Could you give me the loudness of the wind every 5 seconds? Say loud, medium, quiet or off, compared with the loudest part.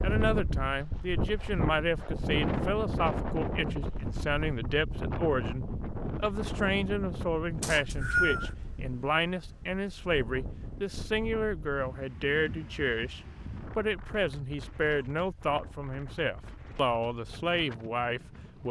loud, medium, medium, quiet.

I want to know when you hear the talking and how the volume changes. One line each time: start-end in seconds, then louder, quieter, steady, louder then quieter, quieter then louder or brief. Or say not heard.
0.0-18.6 steady.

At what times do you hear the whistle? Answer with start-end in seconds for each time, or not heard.
7.6-8.5.